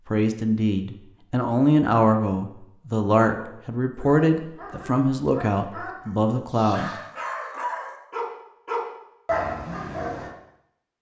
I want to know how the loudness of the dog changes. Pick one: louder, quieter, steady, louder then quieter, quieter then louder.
louder.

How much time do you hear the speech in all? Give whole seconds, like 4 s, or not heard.
7 s.